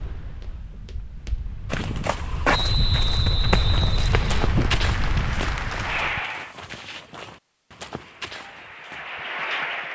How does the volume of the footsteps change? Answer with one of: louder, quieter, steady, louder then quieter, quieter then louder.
louder then quieter.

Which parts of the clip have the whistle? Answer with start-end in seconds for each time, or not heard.
2.5-4.5.